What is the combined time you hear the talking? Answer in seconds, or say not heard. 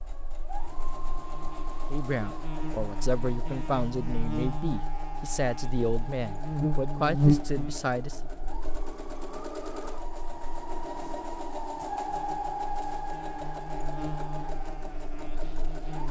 6 s.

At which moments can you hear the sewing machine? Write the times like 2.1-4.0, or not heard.
0.0-16.0.